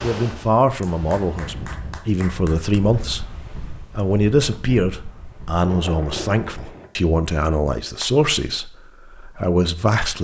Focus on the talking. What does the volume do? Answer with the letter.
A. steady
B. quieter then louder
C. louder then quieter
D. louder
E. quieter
A.